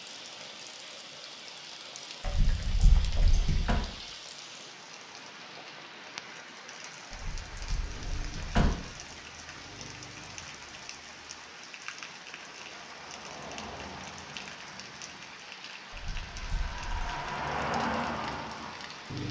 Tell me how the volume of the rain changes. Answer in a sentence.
The volume of the rain stays about the same.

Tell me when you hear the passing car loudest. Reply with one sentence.
The loudest moment of the passing car is at 18 seconds.